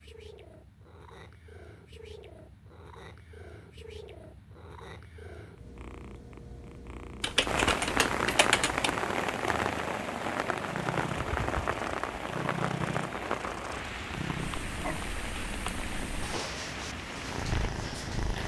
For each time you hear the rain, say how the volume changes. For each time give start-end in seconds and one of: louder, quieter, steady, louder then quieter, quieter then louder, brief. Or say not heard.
7.5-18.4 quieter.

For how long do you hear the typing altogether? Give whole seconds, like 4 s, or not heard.
2 s.